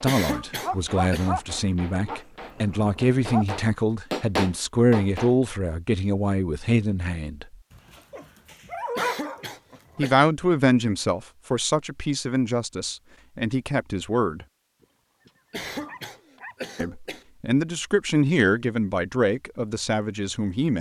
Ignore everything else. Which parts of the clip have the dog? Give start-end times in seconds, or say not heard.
0.6-3.5, 7.7-10.1, 14.8-16.6.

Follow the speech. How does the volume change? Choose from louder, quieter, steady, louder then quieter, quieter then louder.
steady.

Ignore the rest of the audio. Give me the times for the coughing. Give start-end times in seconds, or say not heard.
0.1-1.3, 8.9-10.2, 15.5-17.2.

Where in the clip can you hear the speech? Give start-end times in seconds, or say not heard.
0.0-7.5, 9.9-14.4, 16.8-20.7.